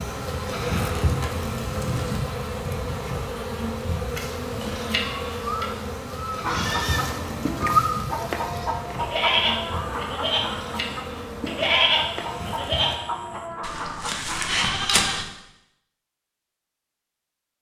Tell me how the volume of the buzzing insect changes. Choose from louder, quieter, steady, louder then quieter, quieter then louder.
quieter.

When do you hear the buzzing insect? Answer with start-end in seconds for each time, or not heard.
0.0-13.1.